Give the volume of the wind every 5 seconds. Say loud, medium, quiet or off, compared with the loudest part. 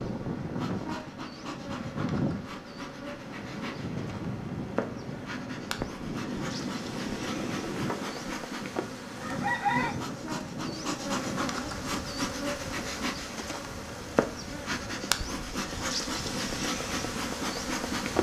loud, loud, medium, medium.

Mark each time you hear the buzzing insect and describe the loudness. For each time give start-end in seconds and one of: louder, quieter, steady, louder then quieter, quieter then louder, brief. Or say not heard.
0.0-18.1 louder.